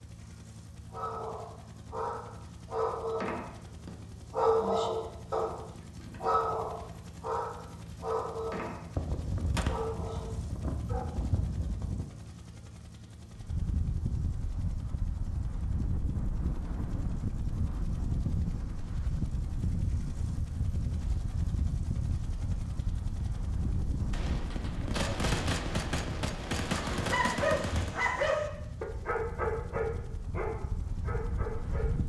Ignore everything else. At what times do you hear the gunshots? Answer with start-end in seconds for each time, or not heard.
8.9-12.1, 24.1-27.9.